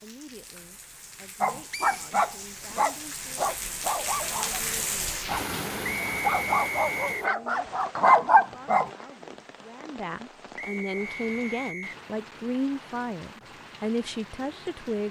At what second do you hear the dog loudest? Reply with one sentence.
The volume of the dog peaks at 8 seconds.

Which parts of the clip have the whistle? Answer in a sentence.
The whistle can be heard from 1.7 to 2.1 s, from 5.8 to 7.3 s and from 10.6 to 12.0 s.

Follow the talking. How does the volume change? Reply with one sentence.
The loudness of the talking goes up.